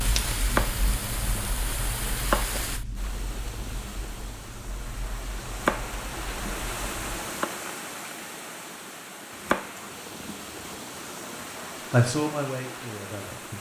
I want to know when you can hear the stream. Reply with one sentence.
The stream can be heard from 0.0 to 13.5 s.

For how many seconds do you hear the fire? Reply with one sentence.
You can hear the fire for 7 seconds altogether.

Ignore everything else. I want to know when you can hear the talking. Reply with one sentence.
You can hear the talking from 11.9 to 13.5 s.